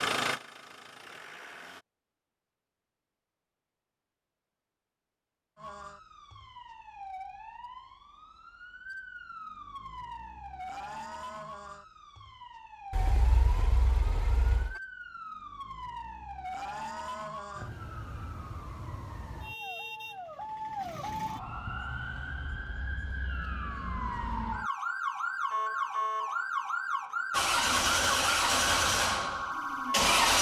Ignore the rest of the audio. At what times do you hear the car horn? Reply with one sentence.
The car horn can be heard from 12.9 to 14.8 s.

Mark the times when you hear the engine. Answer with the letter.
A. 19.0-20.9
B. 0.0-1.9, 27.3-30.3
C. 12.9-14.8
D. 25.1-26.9
B.